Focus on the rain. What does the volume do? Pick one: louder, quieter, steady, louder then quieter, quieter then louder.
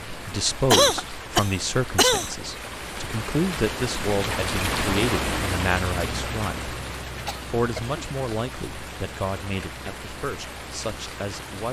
louder then quieter.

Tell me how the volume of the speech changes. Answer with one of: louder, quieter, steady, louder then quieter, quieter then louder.
quieter.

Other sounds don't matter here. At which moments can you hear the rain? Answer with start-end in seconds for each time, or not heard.
0.0-11.6.